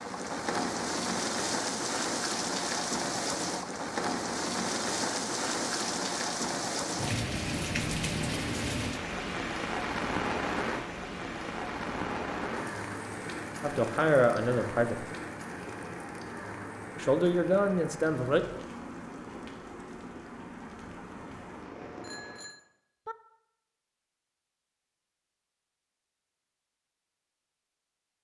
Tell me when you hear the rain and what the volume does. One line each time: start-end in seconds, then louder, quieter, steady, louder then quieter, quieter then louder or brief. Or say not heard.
0.0-22.6 quieter.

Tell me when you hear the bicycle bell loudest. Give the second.
8 s.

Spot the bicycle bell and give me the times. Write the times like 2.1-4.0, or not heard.
7.5-8.4, 22.0-23.1.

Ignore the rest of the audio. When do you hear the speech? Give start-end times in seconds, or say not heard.
13.6-15.1, 17.0-18.4.